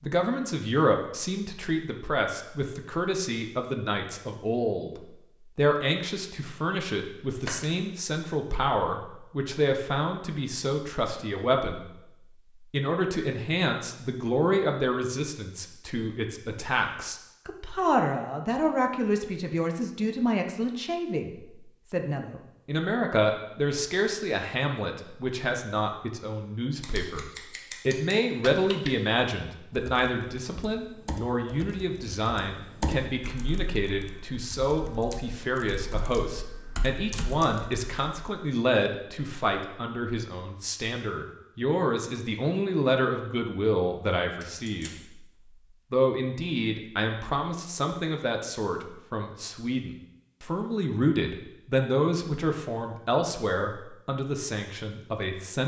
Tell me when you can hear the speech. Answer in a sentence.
You can hear the speech from 0.0 to 11.8 s, from 12.6 to 45.2 s and from 45.9 to 55.6 s.